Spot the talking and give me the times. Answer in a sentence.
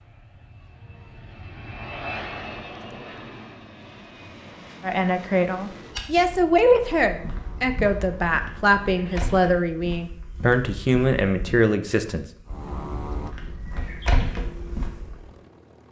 You can hear the talking from 4.8 to 12.2 s.